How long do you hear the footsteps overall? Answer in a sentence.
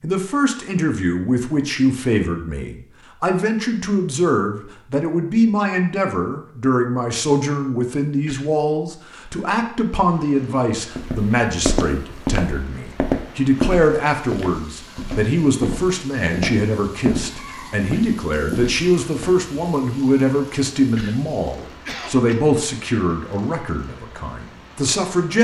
The footsteps can be heard for 8 seconds in total.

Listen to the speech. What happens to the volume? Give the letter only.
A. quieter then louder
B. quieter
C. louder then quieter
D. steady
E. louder
D.